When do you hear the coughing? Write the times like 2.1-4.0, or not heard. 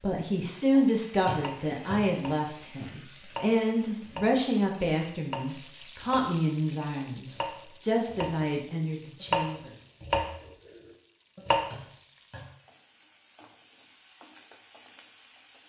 1.2-2.1, 11.7-12.6.